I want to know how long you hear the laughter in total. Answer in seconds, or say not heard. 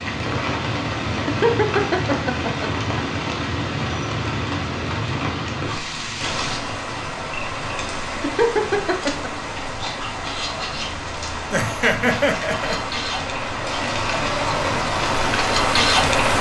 4 s.